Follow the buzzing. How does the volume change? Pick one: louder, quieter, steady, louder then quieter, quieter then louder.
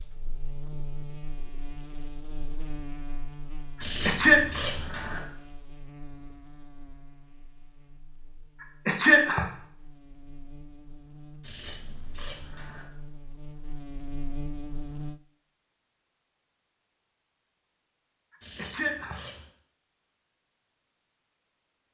quieter then louder.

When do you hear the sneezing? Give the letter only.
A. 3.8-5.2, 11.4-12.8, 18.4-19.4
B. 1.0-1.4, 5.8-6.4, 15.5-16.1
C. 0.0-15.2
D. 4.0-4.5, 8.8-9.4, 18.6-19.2
D.